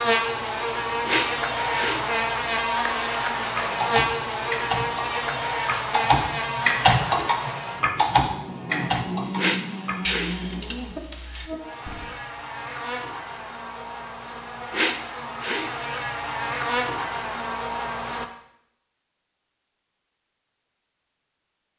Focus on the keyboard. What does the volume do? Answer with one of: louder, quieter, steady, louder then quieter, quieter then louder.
louder then quieter.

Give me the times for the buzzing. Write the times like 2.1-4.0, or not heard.
0.0-18.3.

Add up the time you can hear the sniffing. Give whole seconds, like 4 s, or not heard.
3 s.